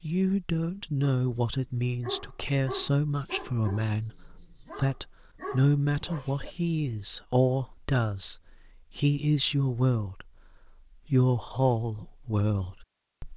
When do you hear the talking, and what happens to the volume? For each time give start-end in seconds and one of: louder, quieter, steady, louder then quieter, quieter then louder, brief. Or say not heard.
0.0-10.2 steady
11.1-13.3 brief.